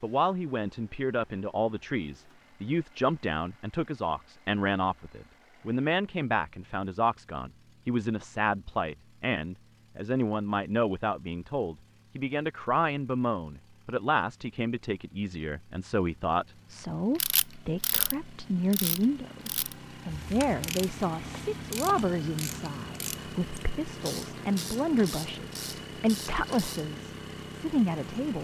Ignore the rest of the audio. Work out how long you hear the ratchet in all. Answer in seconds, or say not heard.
10 s.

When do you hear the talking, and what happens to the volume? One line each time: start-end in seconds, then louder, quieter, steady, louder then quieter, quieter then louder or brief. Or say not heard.
0.0-28.3 steady.